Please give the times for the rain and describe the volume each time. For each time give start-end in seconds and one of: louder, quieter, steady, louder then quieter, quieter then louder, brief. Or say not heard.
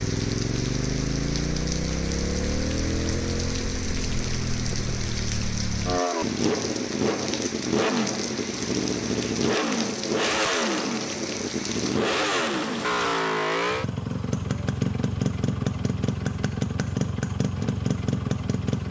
0.0-13.4 steady.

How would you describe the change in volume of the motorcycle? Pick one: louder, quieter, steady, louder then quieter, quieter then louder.
steady.